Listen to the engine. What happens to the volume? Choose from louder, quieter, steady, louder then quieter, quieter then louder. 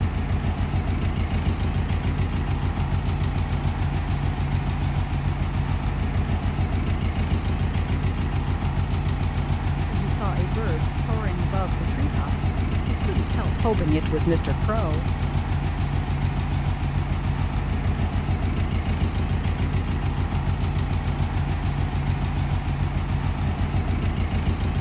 steady.